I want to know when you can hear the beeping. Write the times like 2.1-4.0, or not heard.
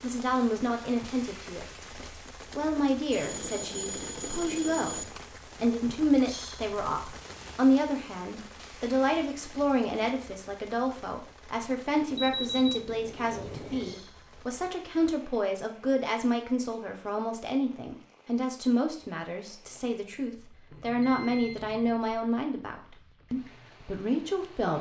3.1-5.1, 12.1-14.1, 20.7-21.9.